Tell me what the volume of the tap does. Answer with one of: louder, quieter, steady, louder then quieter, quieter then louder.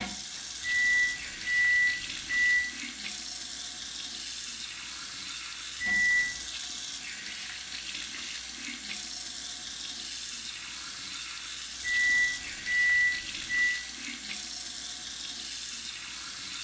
steady.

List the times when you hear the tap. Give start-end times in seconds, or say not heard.
0.0-16.5.